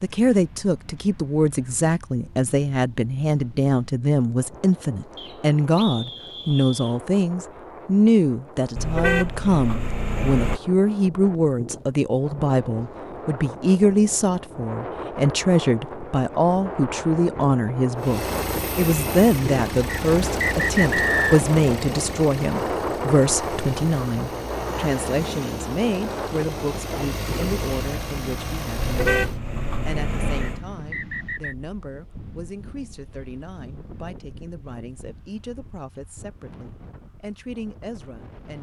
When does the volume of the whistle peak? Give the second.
21 s.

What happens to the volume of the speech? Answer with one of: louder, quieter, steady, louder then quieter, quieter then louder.
quieter.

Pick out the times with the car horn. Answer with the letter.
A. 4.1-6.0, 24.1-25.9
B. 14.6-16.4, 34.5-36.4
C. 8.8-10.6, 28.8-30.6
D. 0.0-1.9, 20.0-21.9
C.